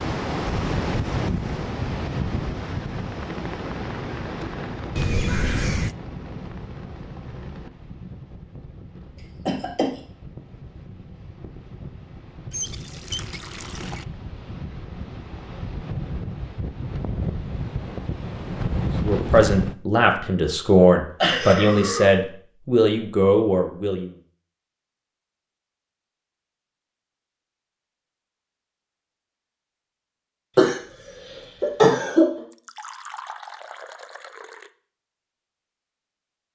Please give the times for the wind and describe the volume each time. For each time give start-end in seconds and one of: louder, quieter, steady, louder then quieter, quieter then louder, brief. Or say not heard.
0.0-19.8 quieter then louder.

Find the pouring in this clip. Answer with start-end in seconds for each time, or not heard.
5.0-6.0, 12.5-14.1, 32.5-34.7.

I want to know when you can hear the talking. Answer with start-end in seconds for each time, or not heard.
19.0-24.1.